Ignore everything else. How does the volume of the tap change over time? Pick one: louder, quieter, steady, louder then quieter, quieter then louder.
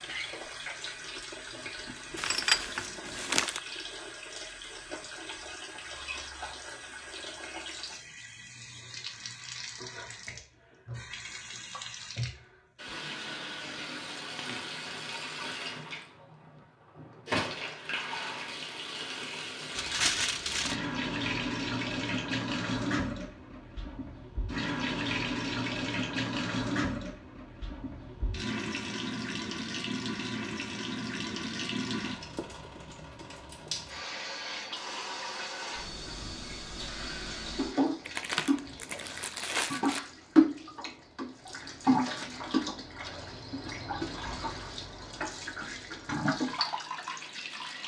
louder.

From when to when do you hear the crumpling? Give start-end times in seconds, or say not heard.
2.1-3.6, 19.8-20.8, 38.0-40.0.